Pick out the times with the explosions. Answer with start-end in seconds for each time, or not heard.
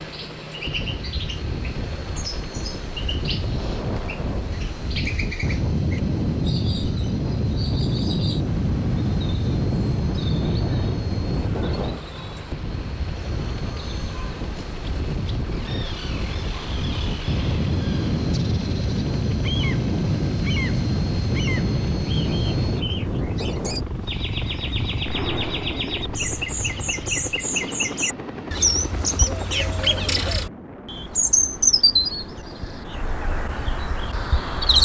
3.4-4.7, 25.1-26.2.